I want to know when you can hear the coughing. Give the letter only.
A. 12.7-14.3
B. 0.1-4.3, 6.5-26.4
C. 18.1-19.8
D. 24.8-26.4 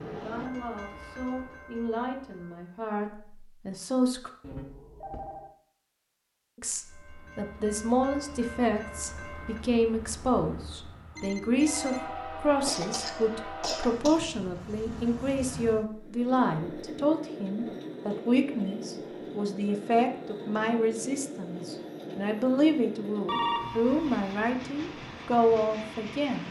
A.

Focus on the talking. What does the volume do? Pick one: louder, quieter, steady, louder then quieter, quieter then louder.
louder.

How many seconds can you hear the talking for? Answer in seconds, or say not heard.
24 s.